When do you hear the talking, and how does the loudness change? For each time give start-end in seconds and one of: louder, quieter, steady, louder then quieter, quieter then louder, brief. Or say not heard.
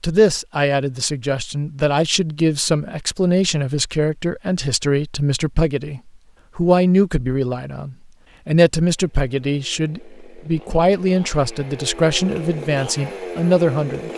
0.0-14.1 steady.